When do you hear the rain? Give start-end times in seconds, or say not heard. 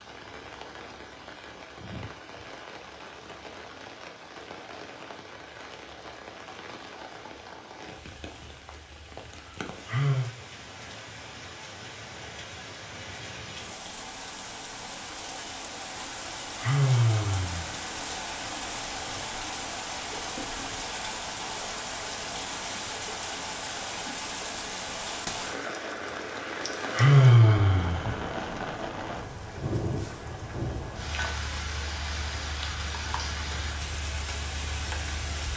0.0-35.5.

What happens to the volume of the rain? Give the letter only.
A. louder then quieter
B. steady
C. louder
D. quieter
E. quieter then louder
C.